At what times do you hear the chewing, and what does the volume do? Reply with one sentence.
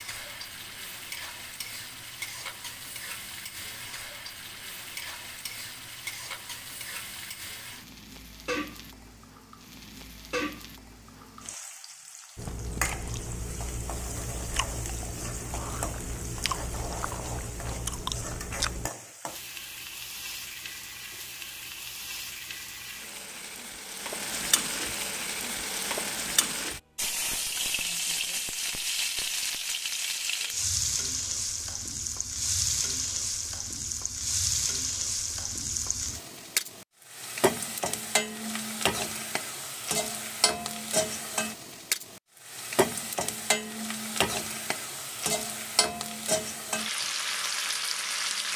You can hear the chewing from 12.3 to 18.9 s, at a steady volume.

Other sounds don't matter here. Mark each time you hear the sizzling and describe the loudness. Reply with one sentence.
The sizzling can be heard from 0.0 to 48.5 s, getting louder.